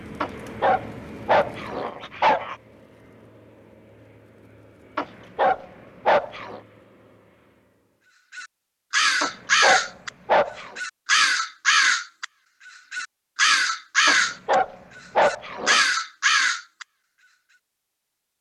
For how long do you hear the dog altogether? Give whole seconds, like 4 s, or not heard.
7 s.